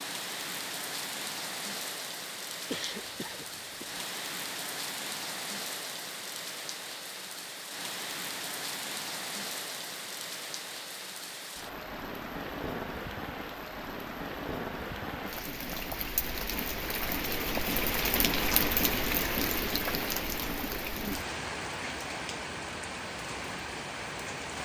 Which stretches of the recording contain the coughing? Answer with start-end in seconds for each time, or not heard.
2.7-4.0.